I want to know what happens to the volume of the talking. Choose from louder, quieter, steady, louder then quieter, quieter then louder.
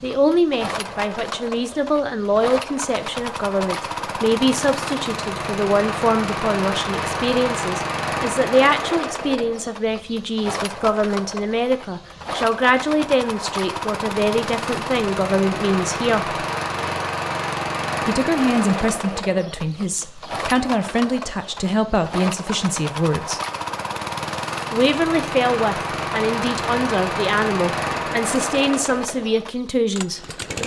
steady.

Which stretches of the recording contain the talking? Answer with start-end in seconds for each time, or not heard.
0.0-16.4, 18.1-23.4, 24.7-30.2.